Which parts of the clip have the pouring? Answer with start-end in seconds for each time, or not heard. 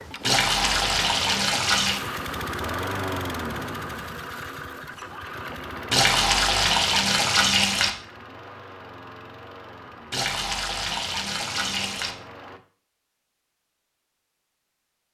0.2-2.0, 5.9-7.9, 10.1-12.2.